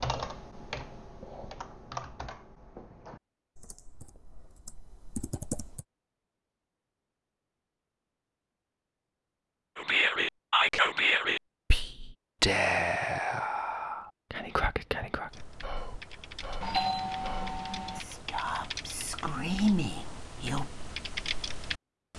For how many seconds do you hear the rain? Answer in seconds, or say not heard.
not heard.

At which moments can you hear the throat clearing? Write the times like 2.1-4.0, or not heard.
not heard.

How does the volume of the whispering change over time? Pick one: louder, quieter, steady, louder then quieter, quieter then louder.
quieter then louder.